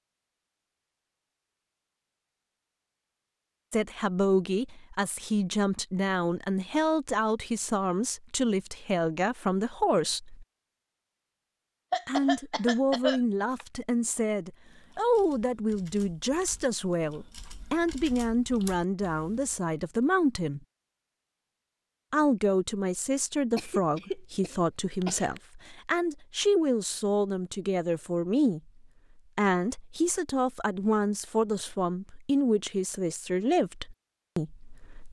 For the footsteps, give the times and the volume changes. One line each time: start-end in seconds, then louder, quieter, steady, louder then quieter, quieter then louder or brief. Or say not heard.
not heard.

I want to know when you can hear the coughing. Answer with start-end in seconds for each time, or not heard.
11.9-13.7, 23.6-25.4.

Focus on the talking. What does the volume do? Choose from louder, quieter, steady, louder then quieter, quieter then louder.
steady.